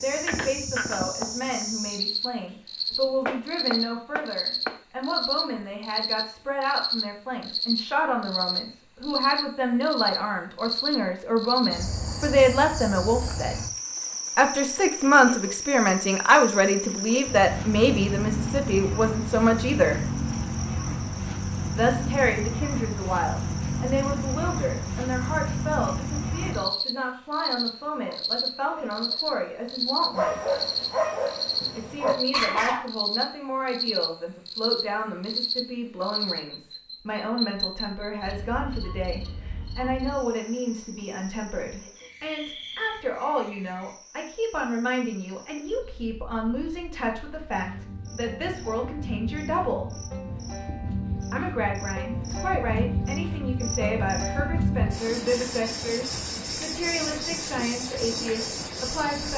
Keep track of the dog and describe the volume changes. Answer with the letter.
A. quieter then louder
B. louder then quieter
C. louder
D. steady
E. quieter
A.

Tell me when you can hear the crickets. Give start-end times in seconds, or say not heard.
0.0-59.3.